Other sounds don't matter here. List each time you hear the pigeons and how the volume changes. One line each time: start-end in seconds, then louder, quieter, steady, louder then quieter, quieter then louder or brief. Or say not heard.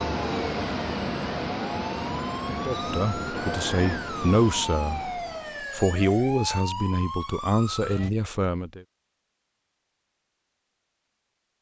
not heard.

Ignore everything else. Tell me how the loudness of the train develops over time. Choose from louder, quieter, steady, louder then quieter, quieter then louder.
quieter.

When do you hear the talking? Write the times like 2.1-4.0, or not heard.
2.6-8.8.